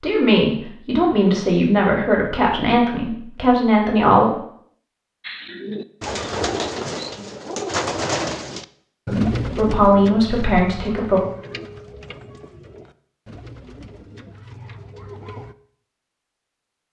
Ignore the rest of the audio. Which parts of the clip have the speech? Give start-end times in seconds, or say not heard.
0.0-4.3, 9.1-11.2.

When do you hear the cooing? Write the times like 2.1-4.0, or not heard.
5.2-15.6.